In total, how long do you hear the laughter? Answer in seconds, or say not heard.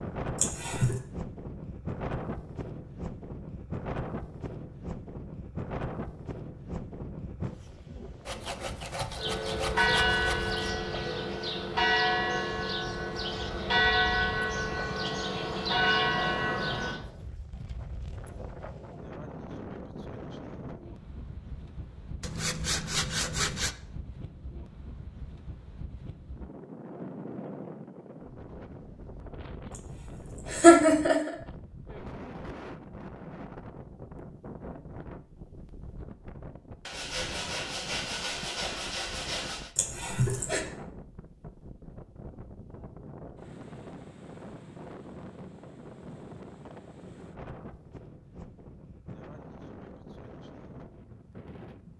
3 s.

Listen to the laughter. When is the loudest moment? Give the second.
31 s.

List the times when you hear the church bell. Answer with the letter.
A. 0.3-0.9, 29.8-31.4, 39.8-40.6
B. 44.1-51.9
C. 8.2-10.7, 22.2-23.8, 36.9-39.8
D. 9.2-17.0
D.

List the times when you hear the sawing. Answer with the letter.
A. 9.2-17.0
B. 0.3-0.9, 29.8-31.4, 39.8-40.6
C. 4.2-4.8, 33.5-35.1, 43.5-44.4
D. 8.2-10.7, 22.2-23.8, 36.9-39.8
D.